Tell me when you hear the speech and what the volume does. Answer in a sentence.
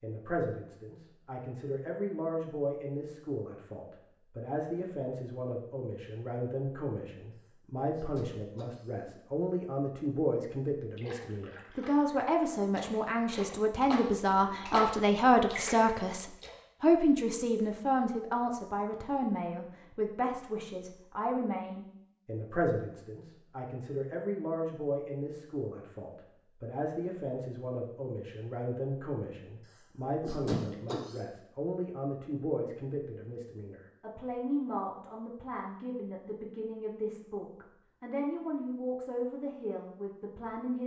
You can hear the speech from 0.0 to 40.8 s, getting louder then quieter.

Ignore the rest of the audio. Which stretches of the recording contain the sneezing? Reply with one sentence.
The sneezing can be heard from 7.4 to 9.2 s and from 29.7 to 31.2 s.